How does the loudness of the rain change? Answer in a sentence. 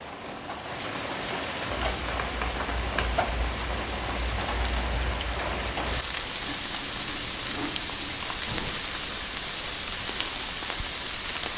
The loudness of the rain stays about the same.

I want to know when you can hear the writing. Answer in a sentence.
You can hear the writing from 1.9 to 8.8 s.